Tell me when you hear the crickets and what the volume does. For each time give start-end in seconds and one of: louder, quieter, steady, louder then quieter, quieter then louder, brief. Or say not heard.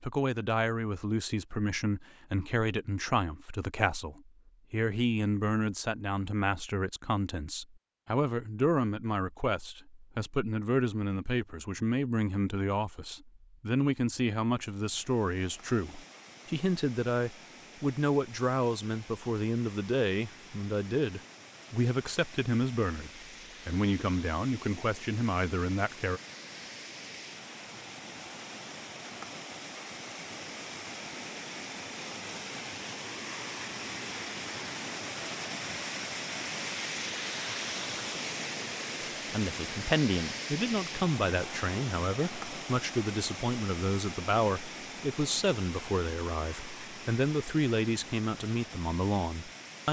not heard.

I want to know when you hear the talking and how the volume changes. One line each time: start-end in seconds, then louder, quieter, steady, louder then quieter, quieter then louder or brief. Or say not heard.
0.0-26.2 steady
39.3-49.8 steady.